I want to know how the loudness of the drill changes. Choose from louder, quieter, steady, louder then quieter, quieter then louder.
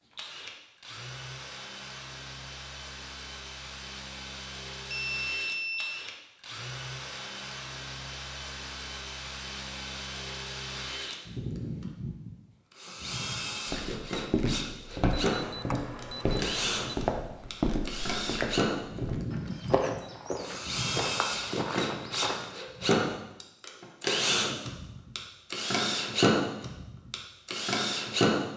louder.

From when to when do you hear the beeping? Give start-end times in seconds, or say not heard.
4.9-6.0, 15.3-16.9.